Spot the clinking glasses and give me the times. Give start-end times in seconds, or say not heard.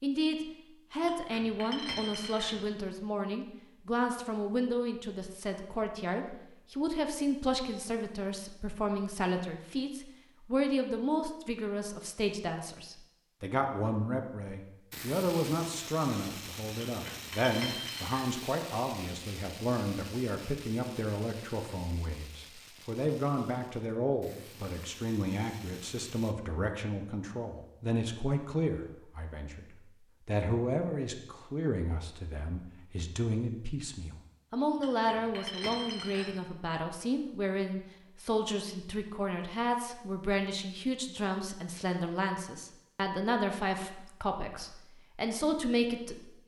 1.0-2.6, 16.9-18.2, 34.8-36.4.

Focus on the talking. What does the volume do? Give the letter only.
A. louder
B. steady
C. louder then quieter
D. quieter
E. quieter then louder
B.